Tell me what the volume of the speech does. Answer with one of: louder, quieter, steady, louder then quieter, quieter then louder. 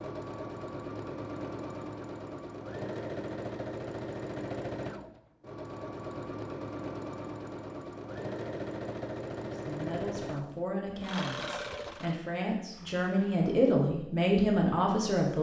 louder.